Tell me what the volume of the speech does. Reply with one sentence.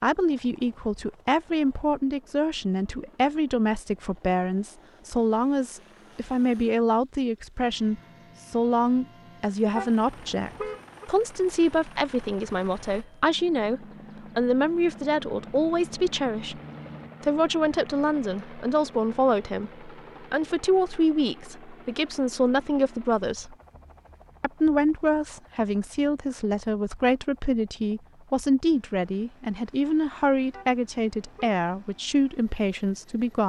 The volume of the speech stays about the same.